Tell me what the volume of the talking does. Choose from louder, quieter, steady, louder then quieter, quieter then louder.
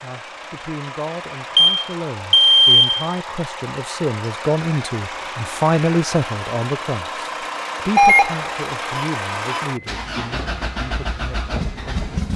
louder then quieter.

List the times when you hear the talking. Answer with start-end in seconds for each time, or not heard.
0.0-12.1.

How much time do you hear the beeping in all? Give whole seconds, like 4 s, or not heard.
3 s.